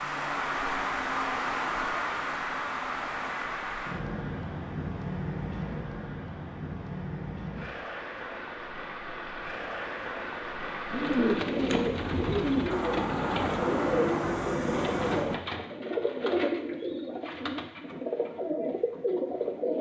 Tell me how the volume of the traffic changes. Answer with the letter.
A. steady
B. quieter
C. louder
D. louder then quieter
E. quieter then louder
E.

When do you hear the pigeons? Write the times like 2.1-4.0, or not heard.
10.9-19.7.